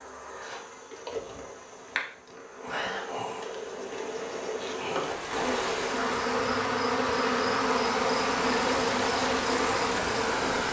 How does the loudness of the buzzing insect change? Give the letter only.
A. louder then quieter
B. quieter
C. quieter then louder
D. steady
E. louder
E.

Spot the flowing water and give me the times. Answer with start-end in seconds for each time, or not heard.
5.0-10.6.